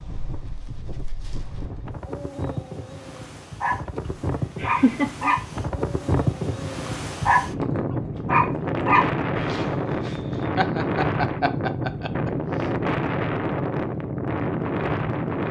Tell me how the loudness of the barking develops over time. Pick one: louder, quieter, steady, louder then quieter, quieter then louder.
louder.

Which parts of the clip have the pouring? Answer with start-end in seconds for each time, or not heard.
not heard.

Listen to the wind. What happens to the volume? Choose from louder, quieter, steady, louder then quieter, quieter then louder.
louder.